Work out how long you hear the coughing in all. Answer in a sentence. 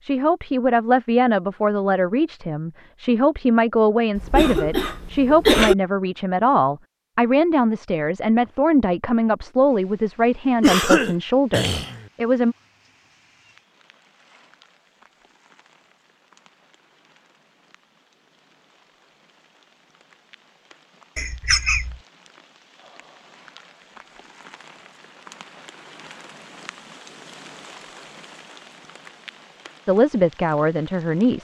You can hear the coughing for 4 seconds altogether.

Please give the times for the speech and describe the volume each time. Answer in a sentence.
You can hear the speech from 0.0 to 12.6 s, at a steady volume; and briefly from 29.9 to 31.4 s.